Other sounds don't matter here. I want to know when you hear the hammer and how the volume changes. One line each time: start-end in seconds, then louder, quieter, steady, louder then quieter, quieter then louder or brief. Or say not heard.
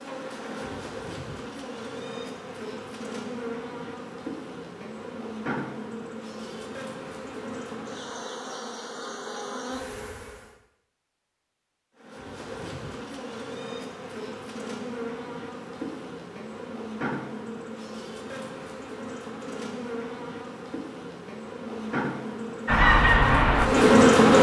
not heard.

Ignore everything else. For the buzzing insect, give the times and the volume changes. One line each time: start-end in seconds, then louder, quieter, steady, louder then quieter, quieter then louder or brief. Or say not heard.
0.0-10.6 steady
11.9-24.3 louder.